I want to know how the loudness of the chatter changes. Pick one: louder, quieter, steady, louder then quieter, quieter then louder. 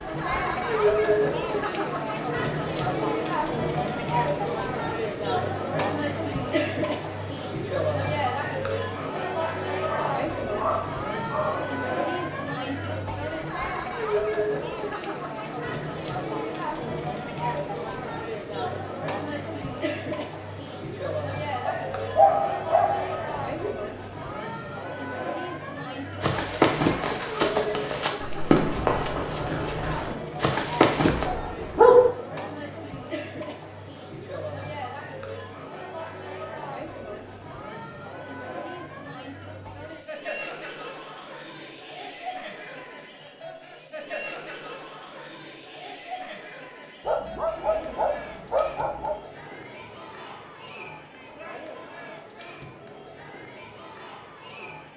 quieter.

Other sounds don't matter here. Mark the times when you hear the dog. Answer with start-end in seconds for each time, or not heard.
9.8-11.7, 21.6-23.7, 31.1-32.1, 47.0-49.1.